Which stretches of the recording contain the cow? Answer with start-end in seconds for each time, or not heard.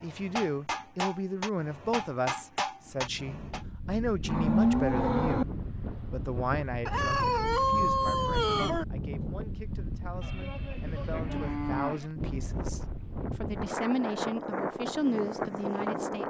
4.2-5.5, 10.2-12.1.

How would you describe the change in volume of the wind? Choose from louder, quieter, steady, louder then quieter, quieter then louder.
louder.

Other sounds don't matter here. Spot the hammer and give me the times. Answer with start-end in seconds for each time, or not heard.
0.0-3.6.